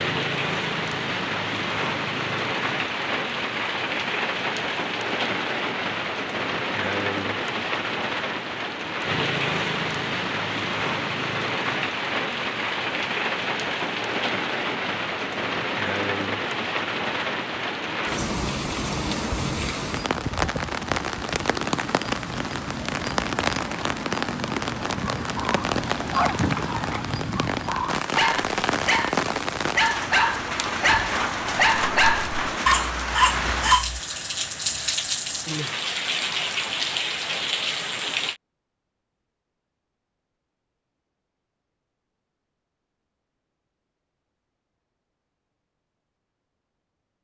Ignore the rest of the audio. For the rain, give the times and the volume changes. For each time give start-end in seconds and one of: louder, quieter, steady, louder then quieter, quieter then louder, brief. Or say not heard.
0.0-38.4 steady.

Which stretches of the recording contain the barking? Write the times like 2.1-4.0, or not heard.
24.9-34.0.